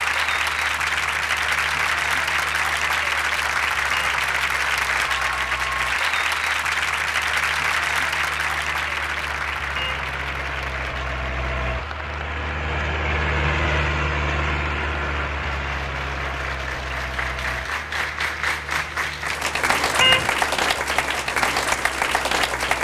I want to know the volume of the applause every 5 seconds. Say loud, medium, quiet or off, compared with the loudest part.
loud, loud, medium, medium, loud.